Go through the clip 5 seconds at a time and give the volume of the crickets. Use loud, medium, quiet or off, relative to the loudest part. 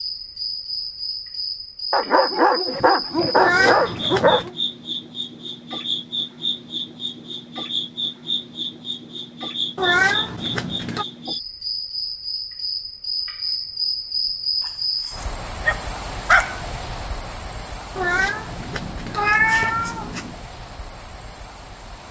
loud, loud, loud, medium, quiet.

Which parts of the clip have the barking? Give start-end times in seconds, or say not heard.
1.9-4.5, 15.1-16.6.